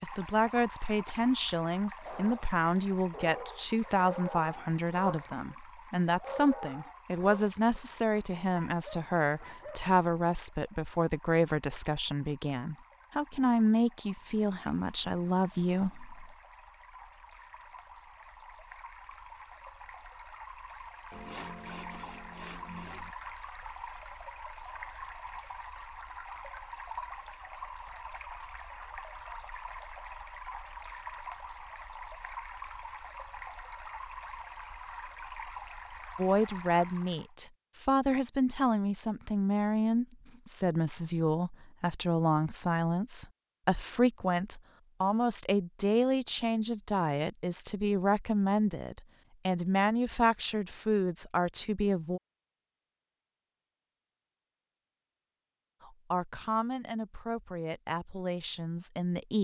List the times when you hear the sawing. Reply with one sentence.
You can hear the sawing from 21.1 to 23.1 s.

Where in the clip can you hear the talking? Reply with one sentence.
You can hear the talking from 0.0 to 16.3 s, from 36.1 to 52.2 s and from 55.8 to 59.3 s.